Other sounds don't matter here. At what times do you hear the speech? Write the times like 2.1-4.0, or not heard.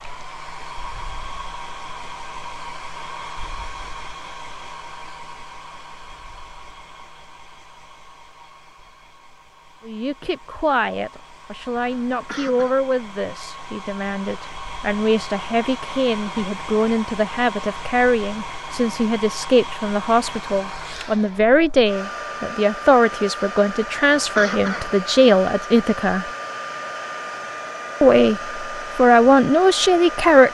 9.8-26.2, 28.0-30.4.